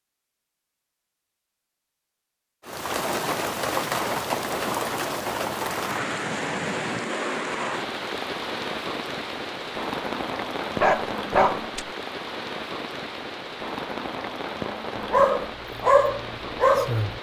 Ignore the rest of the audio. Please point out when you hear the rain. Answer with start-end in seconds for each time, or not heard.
2.6-17.1.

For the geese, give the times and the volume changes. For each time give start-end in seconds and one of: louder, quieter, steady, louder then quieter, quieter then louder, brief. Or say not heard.
not heard.